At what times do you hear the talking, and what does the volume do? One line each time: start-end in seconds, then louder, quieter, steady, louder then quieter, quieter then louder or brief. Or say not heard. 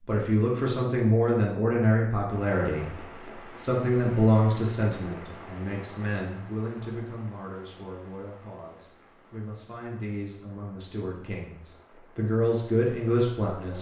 0.1-13.7 quieter then louder.